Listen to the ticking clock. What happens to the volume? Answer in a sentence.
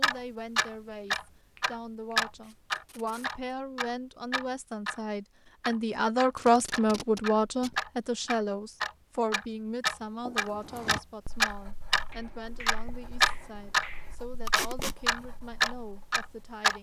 The loudness of the ticking clock goes down, then up.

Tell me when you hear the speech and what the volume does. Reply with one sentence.
The speech can be heard from 0.0 to 16.7 s, getting louder then quieter.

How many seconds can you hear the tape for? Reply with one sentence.
You can hear the tape for 3 seconds altogether.